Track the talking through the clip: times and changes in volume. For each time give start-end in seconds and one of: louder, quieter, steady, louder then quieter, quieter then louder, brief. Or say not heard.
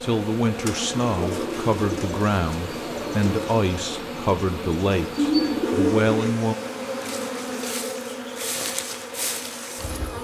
0.0-6.5 steady.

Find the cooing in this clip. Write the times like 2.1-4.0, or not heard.
0.7-3.5, 5.2-6.3.